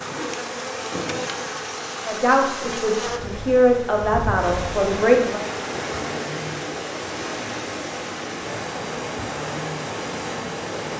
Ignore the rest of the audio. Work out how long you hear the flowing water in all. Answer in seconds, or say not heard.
11 s.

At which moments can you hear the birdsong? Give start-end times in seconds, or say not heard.
not heard.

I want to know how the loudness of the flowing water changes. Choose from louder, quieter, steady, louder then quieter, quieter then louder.
louder.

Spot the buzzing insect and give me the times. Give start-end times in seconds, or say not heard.
0.0-6.6, 8.3-10.8.